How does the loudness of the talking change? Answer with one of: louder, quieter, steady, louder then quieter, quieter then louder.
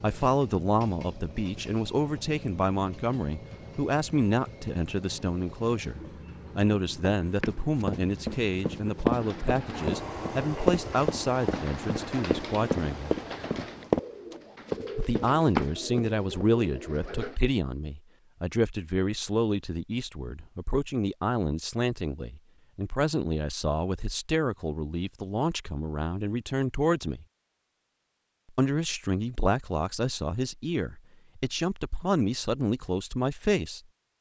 steady.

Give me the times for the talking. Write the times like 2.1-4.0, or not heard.
0.0-13.2, 14.9-27.2, 28.6-33.8.